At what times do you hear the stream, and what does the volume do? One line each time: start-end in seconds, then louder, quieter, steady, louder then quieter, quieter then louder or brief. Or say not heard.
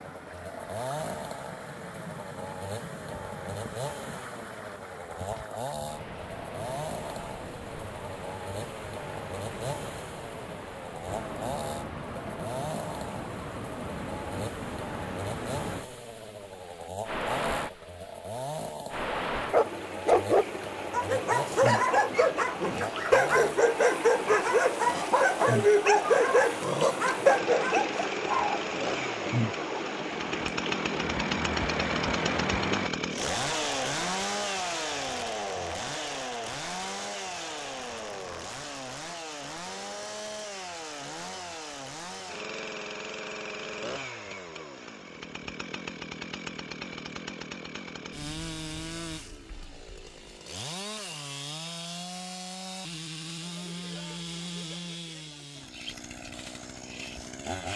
0.0-32.9 louder.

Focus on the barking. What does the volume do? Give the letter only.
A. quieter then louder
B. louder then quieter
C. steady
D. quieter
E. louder
C.